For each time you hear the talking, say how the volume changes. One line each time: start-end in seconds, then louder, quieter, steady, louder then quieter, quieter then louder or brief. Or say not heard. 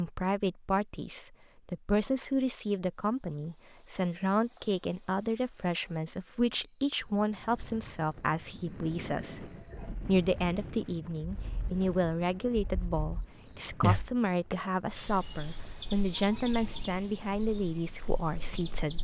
0.0-18.9 steady.